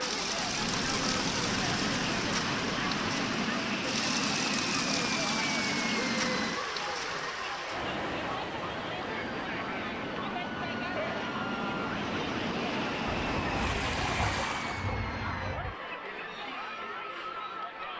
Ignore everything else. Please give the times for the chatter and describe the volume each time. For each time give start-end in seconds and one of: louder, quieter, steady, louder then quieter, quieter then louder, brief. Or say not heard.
0.0-17.9 steady.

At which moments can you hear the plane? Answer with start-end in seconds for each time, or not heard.
0.0-6.6, 8.9-15.6.